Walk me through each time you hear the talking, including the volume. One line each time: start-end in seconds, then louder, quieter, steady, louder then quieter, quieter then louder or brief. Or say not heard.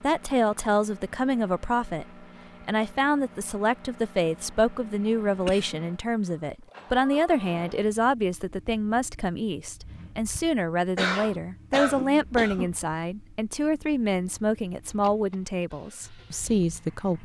0.0-17.2 steady.